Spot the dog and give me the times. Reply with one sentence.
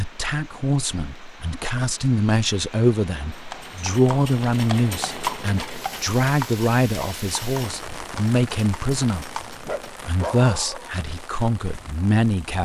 You can hear the dog from 9.4 to 10.9 s.